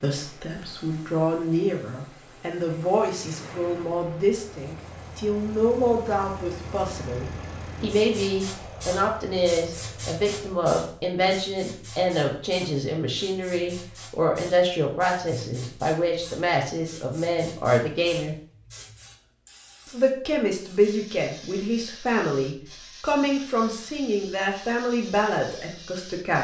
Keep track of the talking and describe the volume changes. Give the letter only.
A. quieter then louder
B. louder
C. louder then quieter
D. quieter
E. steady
E.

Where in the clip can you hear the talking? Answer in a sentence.
The talking can be heard from 0.0 to 18.4 s and from 19.9 to 26.4 s.